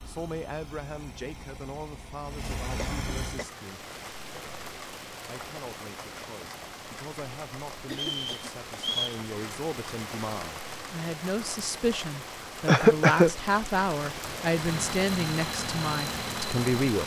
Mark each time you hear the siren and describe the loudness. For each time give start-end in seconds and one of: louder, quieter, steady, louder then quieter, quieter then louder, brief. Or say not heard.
not heard.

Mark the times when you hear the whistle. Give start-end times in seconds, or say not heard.
7.9-9.2.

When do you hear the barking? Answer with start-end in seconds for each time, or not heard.
not heard.